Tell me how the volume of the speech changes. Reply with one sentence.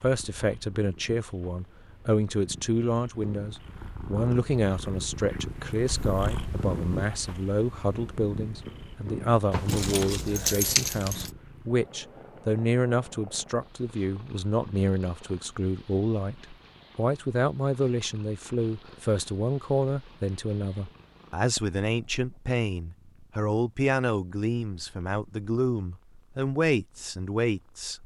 The volume of the speech stays about the same.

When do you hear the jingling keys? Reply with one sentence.
You can hear the jingling keys from 9.5 to 11.3 s.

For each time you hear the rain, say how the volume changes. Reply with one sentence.
The rain can't be heard in this clip.